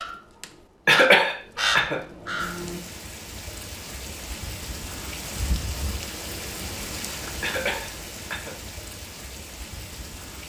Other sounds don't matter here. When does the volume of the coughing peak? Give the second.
1 s.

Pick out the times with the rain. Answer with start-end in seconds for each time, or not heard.
2.4-10.4.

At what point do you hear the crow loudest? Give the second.
2 s.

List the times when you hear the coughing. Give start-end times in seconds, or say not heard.
0.8-2.0, 7.4-8.6.